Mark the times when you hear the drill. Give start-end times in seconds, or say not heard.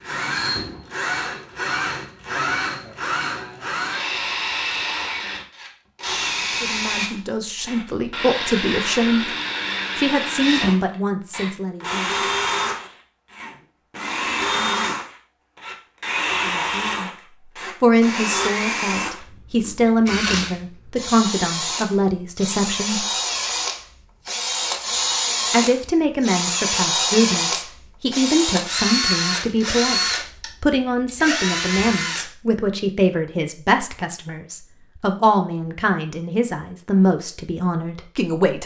0.0-32.2.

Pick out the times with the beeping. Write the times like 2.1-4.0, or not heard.
not heard.